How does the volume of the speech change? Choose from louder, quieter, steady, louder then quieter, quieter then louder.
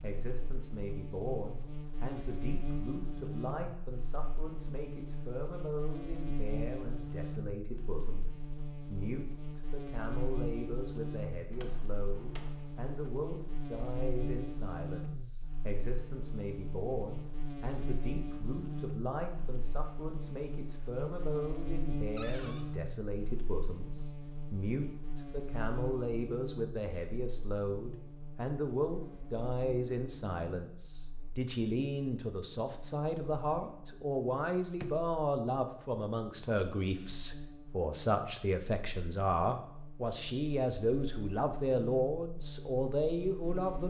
louder.